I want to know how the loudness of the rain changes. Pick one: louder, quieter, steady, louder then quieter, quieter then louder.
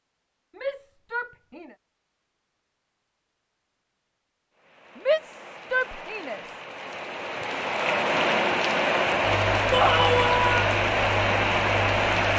louder.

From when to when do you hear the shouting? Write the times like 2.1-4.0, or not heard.
0.6-1.8, 5.0-6.4, 9.7-10.7.